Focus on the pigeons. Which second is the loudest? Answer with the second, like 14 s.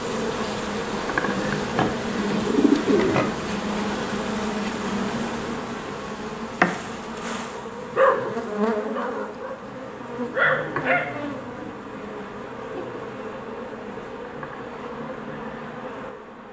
3 s.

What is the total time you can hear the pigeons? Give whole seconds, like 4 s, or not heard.
2 s.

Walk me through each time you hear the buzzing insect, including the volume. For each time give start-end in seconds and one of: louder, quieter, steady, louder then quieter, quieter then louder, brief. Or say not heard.
0.0-16.4 quieter.